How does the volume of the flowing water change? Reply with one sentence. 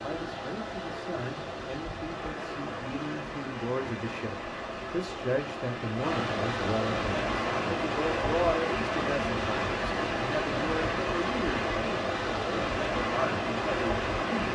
The loudness of the flowing water goes up.